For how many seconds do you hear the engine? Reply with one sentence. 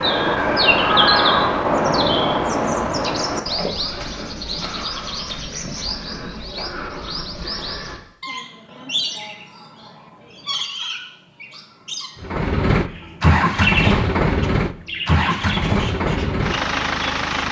The engine can be heard for 5 seconds in total.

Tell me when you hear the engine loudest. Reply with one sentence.
The volume of the engine peaks at 14 seconds.